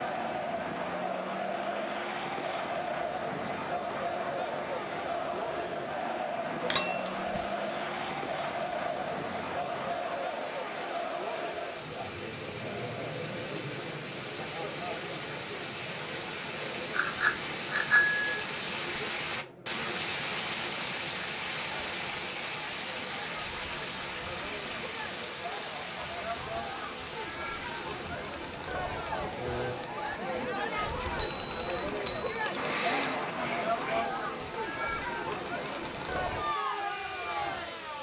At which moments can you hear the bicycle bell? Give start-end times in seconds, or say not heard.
6.6-7.5, 16.9-18.5, 31.1-32.3.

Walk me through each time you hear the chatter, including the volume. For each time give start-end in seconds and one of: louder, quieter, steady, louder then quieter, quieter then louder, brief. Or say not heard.
0.0-37.9 quieter then louder.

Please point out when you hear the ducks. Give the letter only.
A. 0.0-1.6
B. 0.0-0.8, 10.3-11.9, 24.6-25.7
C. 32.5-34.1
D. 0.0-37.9
C.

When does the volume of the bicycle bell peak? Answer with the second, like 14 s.
18 s.